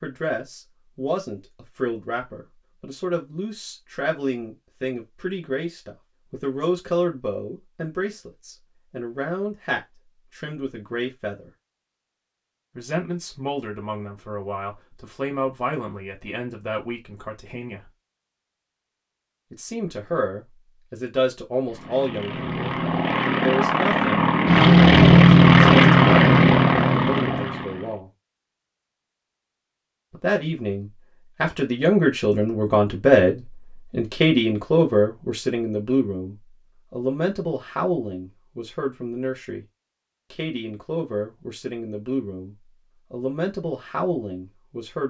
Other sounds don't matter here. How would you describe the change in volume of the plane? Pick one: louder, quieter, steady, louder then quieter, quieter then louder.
louder then quieter.